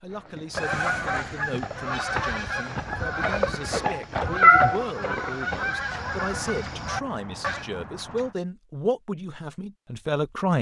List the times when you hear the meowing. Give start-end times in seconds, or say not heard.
3.9-4.8.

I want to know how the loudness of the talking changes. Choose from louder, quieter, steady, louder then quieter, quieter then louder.
louder.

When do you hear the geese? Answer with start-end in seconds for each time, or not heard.
0.6-7.7.